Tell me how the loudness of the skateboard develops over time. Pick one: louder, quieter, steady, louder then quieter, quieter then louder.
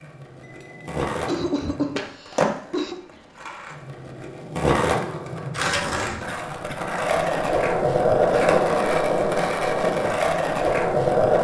quieter then louder.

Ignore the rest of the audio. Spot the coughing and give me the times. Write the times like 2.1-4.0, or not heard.
0.5-3.0, 6.2-7.0.